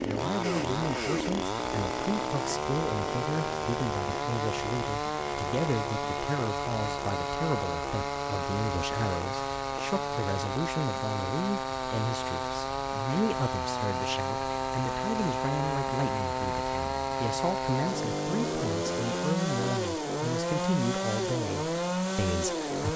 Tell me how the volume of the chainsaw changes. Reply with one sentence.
The volume of the chainsaw stays about the same.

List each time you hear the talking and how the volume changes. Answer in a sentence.
You can hear the talking from 0.1 to 22.9 s, at a steady volume.